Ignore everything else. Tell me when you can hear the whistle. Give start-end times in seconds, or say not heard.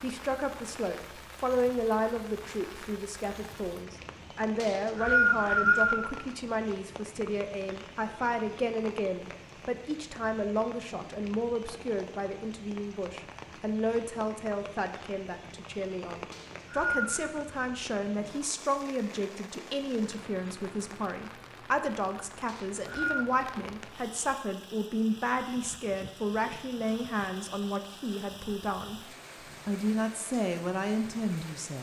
4.5-6.1, 16.3-17.3, 22.4-23.2.